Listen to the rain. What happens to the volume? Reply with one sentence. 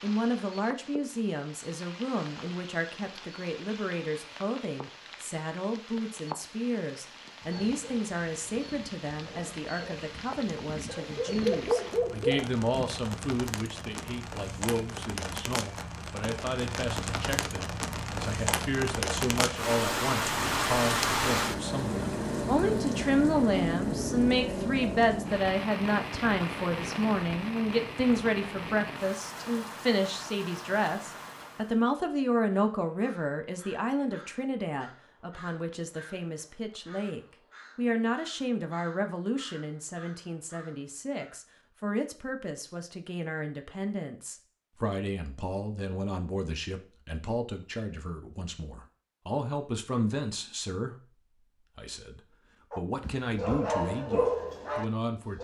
The loudness of the rain goes up, then down.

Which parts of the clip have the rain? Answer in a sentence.
The rain can be heard from 0.0 to 31.8 s.